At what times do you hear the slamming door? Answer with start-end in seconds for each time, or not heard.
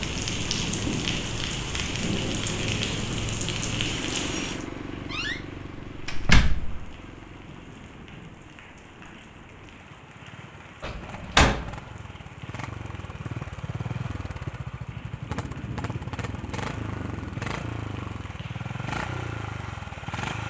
5.1-6.9, 10.8-11.8.